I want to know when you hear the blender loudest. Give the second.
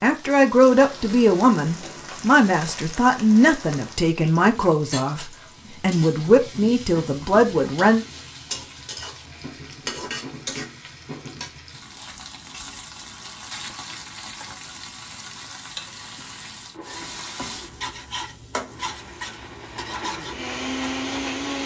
21 s.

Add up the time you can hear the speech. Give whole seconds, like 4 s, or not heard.
8 s.